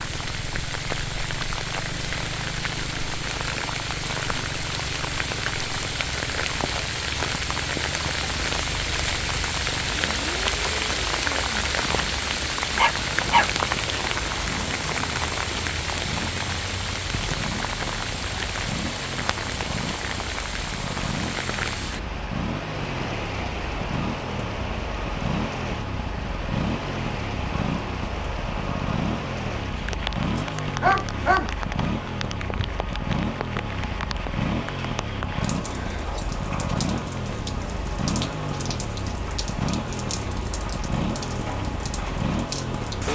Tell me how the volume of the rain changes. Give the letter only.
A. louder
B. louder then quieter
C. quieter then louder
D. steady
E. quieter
E.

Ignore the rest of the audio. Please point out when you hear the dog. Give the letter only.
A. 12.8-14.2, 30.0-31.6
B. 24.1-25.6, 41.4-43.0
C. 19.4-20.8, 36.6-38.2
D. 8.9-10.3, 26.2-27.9
A.